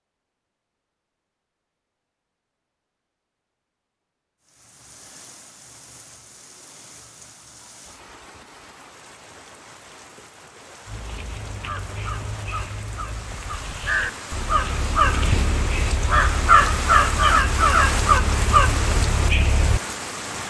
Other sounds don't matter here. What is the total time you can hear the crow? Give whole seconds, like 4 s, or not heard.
9 s.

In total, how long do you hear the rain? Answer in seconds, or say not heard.
16 s.